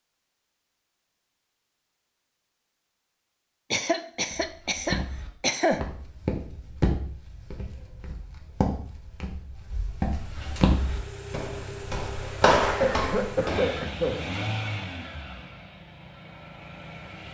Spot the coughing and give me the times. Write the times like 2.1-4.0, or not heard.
3.7-5.8, 12.8-14.2.